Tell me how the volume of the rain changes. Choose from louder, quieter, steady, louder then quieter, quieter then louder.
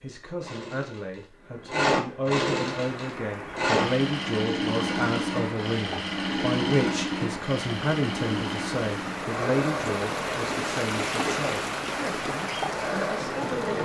louder.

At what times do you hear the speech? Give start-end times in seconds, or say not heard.
0.0-13.7.